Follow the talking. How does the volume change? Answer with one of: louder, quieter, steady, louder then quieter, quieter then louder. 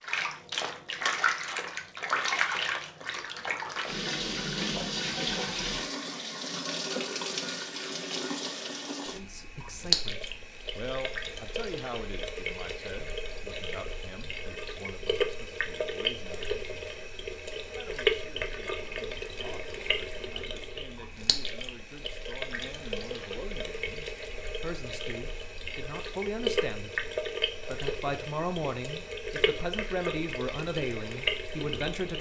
quieter then louder.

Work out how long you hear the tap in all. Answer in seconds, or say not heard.
32 s.